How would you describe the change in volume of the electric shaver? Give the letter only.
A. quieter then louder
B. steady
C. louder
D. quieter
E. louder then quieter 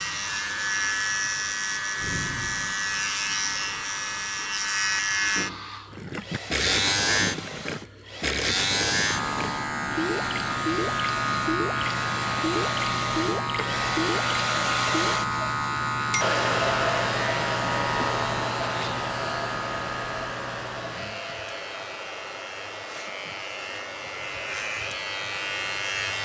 D.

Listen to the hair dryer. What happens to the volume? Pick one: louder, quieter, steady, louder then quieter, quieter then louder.
louder then quieter.